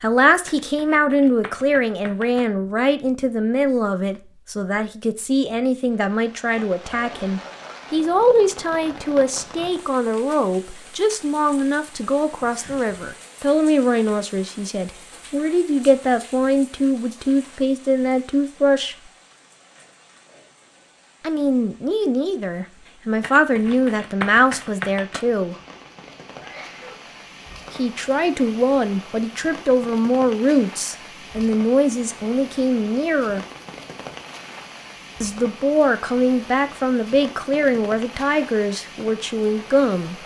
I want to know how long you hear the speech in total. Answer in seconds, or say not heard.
34 s.